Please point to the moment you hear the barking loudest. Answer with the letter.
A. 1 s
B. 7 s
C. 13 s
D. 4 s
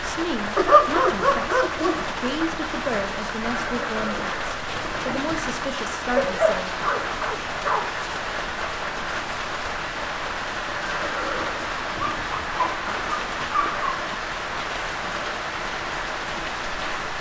A.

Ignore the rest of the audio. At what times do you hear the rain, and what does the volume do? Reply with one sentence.
The rain can be heard from 0.0 to 17.1 s, at a steady volume.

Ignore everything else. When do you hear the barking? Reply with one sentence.
The barking can be heard from 0.6 to 2.0 s, from 6.2 to 7.8 s and from 11.9 to 13.9 s.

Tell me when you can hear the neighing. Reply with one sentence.
You can hear the neighing from 3.6 to 5.4 s and from 10.7 to 12.2 s.